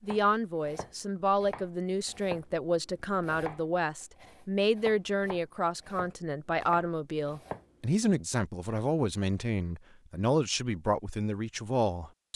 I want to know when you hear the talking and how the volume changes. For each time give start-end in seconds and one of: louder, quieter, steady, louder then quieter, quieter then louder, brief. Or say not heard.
0.0-12.2 steady.